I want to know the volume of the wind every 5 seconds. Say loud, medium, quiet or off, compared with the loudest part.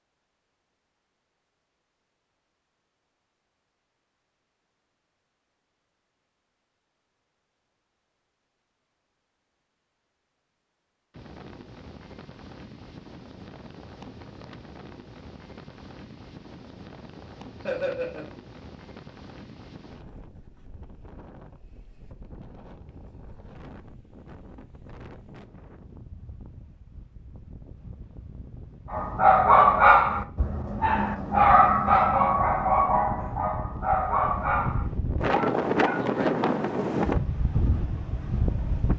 off, off, quiet, quiet, quiet, quiet, medium, loud.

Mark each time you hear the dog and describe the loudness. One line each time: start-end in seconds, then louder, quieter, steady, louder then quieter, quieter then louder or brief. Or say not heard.
28.9-36.0 quieter.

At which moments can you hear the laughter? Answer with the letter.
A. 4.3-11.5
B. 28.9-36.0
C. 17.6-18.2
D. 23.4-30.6
C.